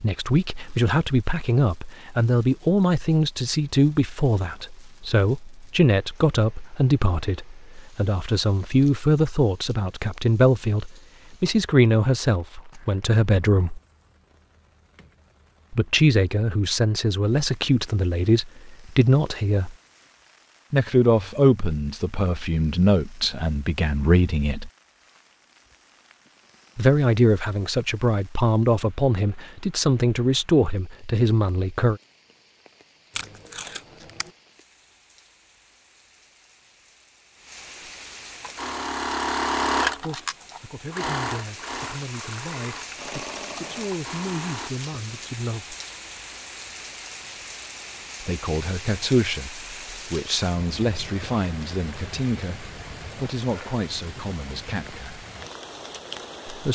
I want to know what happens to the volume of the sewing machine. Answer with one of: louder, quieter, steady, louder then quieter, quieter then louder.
quieter.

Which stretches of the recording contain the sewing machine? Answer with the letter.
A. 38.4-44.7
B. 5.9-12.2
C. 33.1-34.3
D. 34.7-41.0
A.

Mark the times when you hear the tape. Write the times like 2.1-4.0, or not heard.
33.1-34.3.